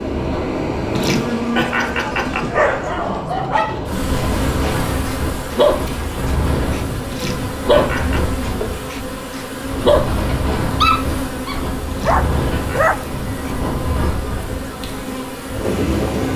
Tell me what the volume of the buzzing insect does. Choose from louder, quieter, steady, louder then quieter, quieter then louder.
steady.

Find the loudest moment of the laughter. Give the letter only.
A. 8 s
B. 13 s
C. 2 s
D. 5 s
C.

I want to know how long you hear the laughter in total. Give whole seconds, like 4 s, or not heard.
4 s.